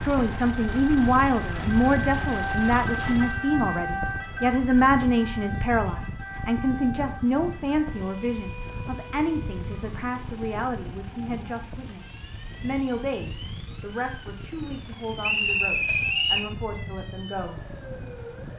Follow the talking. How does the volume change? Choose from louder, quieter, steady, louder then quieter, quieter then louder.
quieter.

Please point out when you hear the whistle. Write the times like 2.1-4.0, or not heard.
15.2-16.5.